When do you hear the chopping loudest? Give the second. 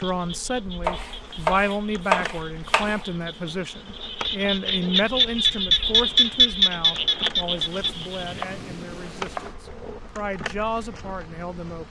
2 s.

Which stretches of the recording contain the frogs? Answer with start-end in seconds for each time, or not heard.
0.0-8.4.